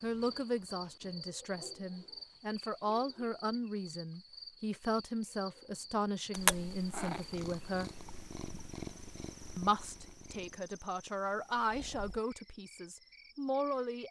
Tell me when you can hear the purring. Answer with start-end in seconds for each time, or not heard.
6.3-12.2.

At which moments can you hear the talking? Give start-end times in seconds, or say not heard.
0.0-7.9, 9.6-14.0.